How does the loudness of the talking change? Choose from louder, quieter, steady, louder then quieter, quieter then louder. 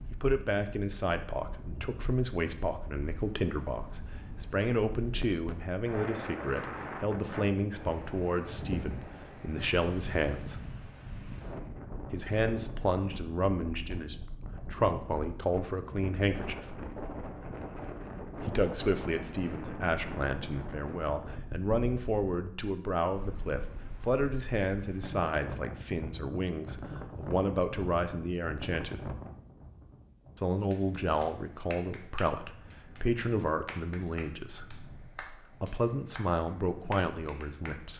steady.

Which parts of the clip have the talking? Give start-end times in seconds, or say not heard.
0.1-10.6, 12.1-16.8, 18.4-29.1, 30.4-37.9.